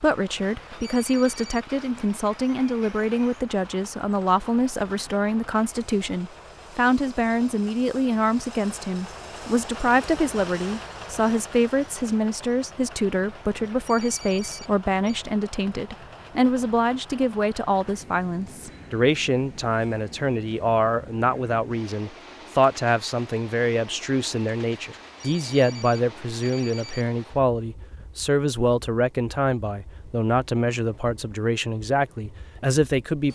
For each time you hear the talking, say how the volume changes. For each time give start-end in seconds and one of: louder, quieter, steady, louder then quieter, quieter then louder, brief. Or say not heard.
0.0-33.3 steady.